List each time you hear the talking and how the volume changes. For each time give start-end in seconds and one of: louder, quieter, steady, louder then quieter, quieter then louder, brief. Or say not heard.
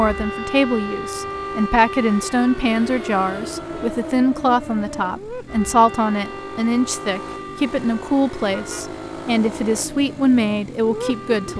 0.0-11.5 steady.